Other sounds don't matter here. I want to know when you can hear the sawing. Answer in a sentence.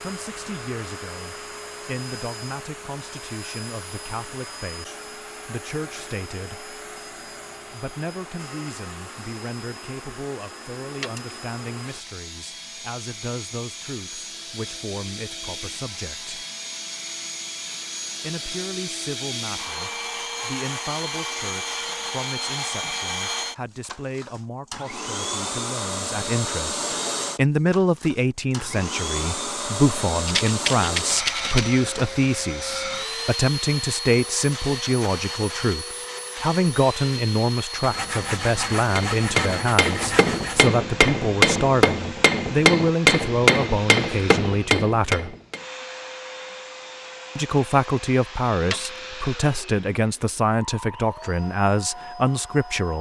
You can hear the sawing from 37.8 to 40.7 s.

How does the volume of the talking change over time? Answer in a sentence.
The loudness of the talking goes up.